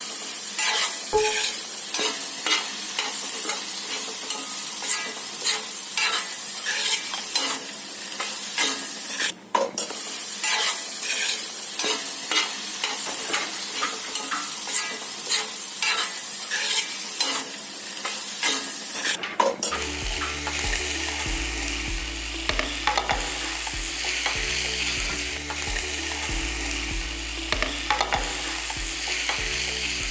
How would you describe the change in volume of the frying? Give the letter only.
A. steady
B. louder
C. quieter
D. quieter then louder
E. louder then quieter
A.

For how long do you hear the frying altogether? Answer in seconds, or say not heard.
30 s.